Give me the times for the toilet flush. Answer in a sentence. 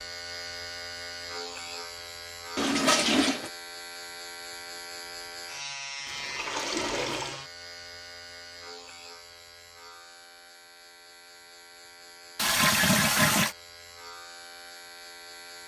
The toilet flush can be heard from 2.5 to 3.5 s, from 6.0 to 7.5 s and from 12.3 to 13.6 s.